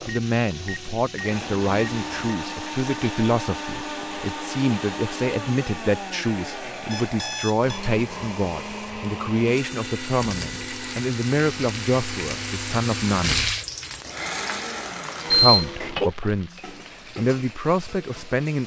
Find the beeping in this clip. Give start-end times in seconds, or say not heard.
0.0-2.4, 6.9-7.8, 15.3-16.1.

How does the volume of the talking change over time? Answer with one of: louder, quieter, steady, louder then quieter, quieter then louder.
steady.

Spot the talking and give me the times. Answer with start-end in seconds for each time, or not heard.
0.1-13.4, 15.3-18.6.